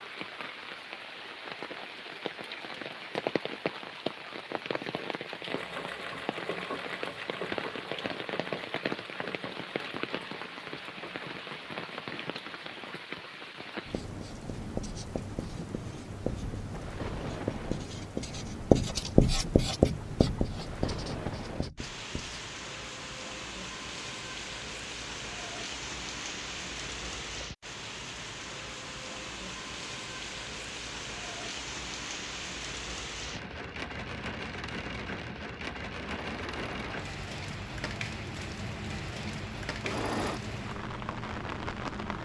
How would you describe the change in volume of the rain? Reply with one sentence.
The loudness of the rain stays about the same.